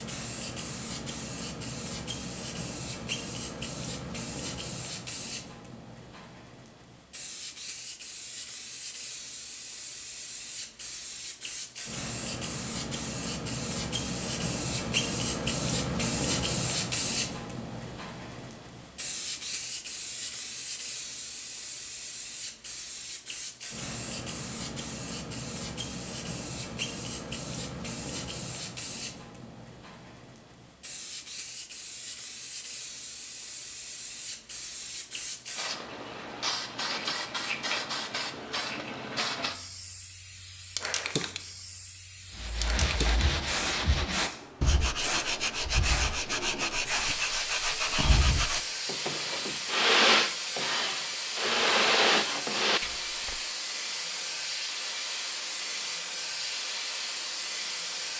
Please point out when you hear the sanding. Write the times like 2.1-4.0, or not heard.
42.4-53.5.